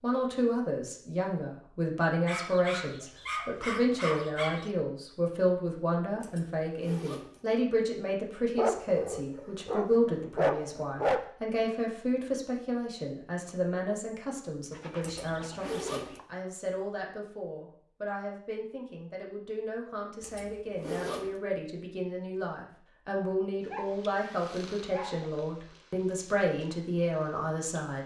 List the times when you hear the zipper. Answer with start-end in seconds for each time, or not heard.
6.2-7.5, 15.0-16.2, 20.2-21.4.